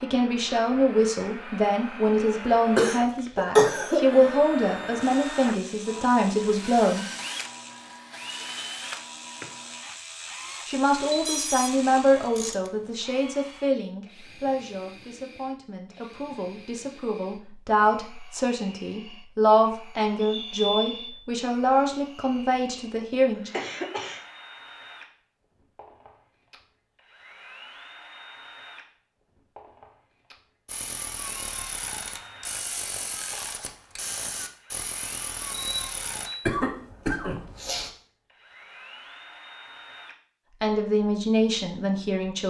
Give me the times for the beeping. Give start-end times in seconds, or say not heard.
11.1-11.7, 20.2-21.1, 35.5-36.5.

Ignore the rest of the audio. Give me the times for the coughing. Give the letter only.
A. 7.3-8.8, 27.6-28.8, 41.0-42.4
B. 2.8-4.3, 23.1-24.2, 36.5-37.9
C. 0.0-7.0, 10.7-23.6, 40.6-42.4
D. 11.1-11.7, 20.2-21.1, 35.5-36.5
B.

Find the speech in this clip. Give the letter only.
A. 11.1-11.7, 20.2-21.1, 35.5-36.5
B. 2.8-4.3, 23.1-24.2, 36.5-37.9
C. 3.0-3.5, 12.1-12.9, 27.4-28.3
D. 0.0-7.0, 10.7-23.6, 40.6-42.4
D.